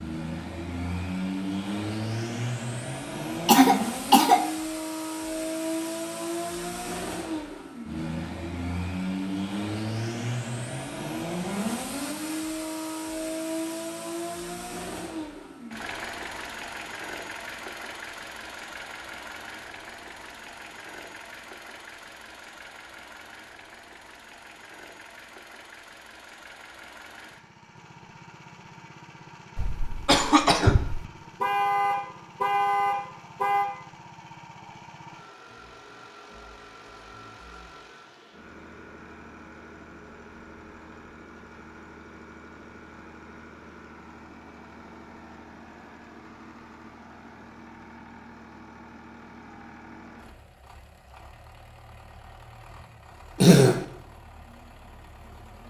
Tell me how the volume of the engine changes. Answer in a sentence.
The loudness of the engine goes down.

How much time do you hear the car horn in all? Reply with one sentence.
You can hear the car horn for 2 seconds altogether.